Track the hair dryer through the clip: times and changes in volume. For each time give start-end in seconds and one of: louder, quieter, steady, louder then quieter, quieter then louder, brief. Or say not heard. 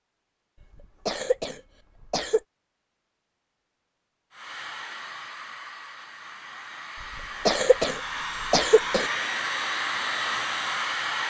4.3-11.2 louder.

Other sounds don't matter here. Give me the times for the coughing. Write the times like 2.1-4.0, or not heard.
0.8-2.4, 7.2-9.1.